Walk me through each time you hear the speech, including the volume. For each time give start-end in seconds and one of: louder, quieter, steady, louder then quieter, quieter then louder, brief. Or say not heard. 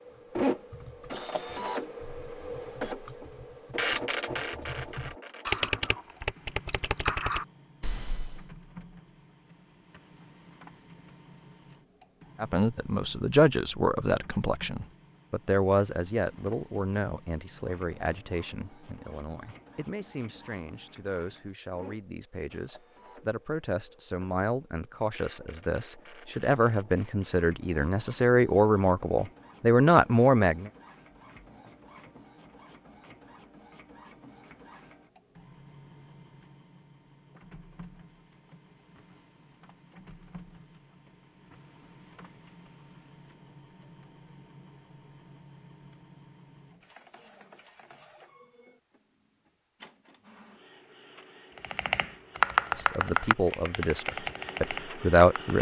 12.4-30.7 quieter then louder
52.8-55.5 brief.